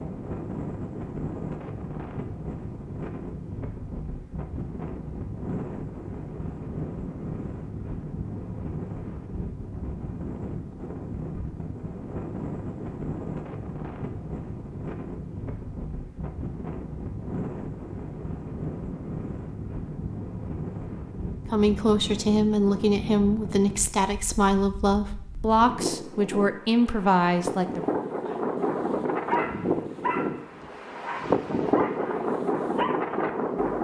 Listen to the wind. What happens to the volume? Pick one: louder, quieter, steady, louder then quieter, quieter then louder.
louder.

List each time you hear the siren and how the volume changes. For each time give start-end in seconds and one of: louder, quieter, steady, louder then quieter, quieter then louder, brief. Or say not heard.
not heard.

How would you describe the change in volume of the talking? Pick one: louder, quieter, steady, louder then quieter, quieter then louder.
steady.